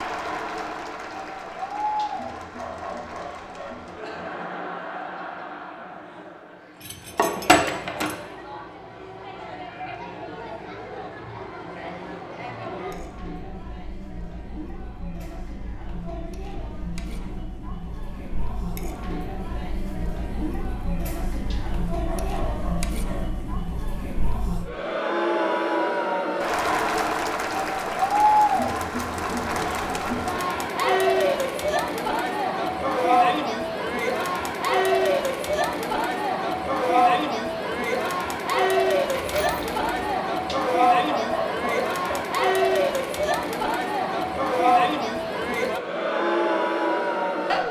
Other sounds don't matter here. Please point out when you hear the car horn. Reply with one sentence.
You can't hear the car horn here.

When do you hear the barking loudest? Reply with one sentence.
The loudest moment of the barking is at 41 seconds.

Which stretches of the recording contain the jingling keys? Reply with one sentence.
The jingling keys can be heard from 6.8 to 8.2 s and from 39.1 to 40.1 s.